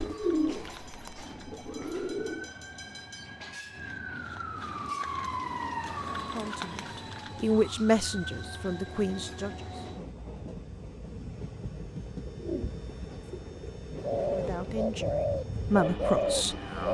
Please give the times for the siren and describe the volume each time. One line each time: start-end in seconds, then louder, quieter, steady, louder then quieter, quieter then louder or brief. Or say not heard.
0.0-9.4 louder then quieter.